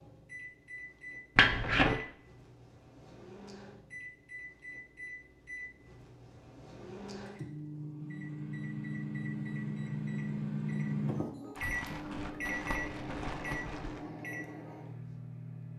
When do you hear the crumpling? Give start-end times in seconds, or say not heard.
1.4-2.0, 11.6-14.1.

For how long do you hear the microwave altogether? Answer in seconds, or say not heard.
16 s.